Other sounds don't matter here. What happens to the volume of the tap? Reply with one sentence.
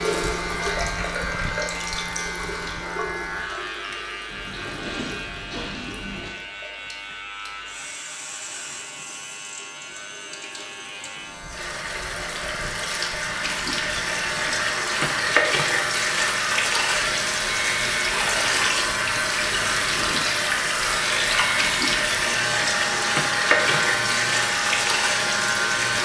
The loudness of the tap goes down, then up.